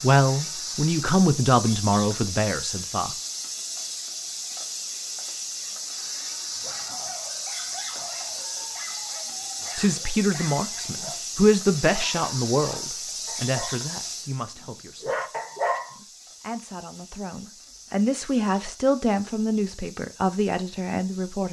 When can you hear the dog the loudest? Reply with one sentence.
The volume of the dog peaks at 16 seconds.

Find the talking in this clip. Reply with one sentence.
You can hear the talking from 0.0 to 3.1 s, from 9.8 to 15.2 s and from 15.9 to 21.4 s.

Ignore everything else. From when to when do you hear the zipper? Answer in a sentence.
You can't hear the zipper here.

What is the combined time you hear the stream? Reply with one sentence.
The stream can't be heard in this clip.